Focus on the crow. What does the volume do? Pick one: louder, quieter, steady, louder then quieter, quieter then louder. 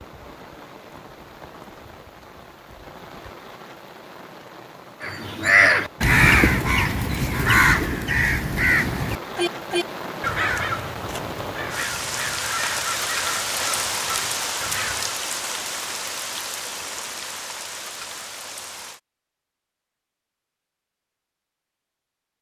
quieter.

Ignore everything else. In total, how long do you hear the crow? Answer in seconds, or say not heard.
10 s.